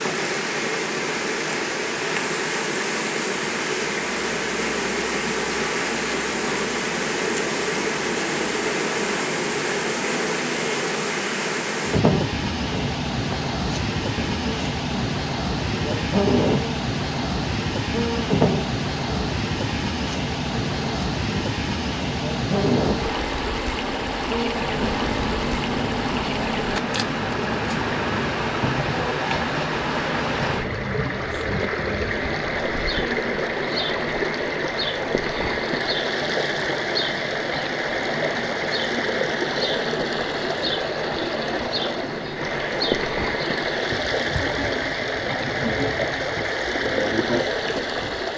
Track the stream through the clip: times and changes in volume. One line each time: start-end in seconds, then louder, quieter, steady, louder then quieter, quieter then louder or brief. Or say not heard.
0.0-48.3 steady.